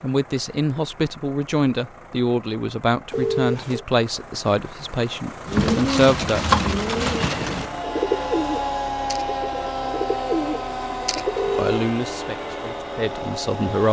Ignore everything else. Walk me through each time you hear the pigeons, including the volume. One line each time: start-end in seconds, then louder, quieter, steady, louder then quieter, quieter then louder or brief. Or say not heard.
5.5-11.4 quieter then louder.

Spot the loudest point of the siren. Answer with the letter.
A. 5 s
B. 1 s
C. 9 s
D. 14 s
C.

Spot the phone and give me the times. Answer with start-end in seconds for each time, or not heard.
3.1-3.9, 10.9-11.8.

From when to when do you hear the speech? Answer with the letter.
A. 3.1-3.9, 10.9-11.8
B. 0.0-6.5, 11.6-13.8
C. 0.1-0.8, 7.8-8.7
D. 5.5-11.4
B.